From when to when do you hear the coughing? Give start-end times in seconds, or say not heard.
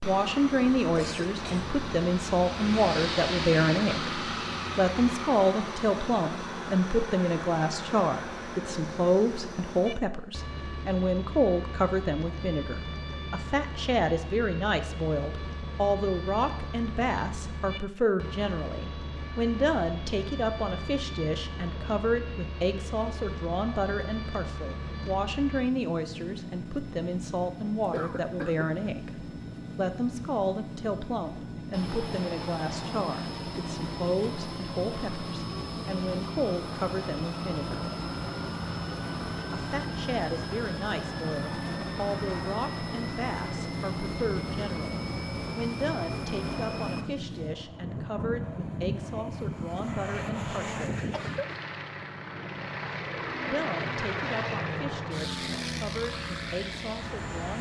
0.9-1.7, 27.9-28.7, 51.0-51.6.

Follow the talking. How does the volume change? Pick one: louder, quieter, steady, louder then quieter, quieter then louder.
quieter.